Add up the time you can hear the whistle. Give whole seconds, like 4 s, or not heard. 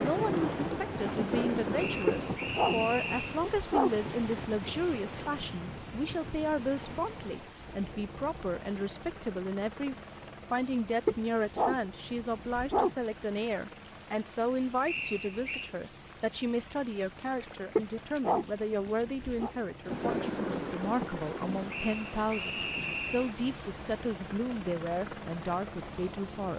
4 s.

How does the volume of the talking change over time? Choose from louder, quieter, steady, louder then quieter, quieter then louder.
steady.